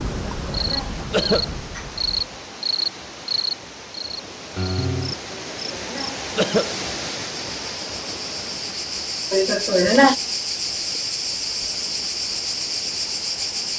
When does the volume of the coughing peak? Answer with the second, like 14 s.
10 s.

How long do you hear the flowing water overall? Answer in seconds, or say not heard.
14 s.